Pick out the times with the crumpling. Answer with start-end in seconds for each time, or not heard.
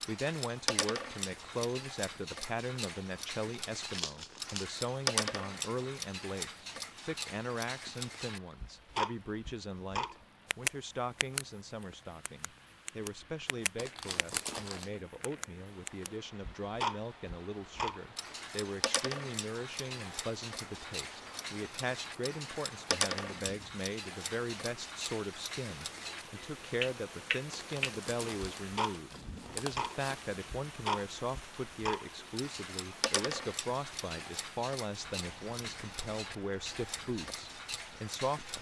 3.8-4.7, 13.8-15.1, 27.5-30.2.